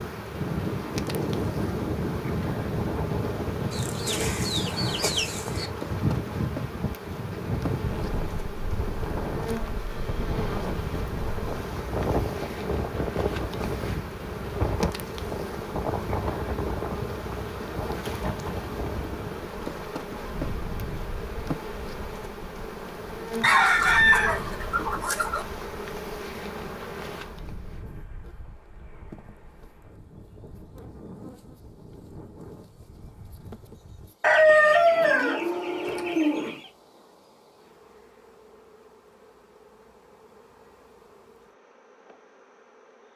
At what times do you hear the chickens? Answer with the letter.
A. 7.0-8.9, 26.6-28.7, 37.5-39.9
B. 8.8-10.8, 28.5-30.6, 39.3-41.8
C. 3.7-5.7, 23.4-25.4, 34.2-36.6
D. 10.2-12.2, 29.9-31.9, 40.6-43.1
C.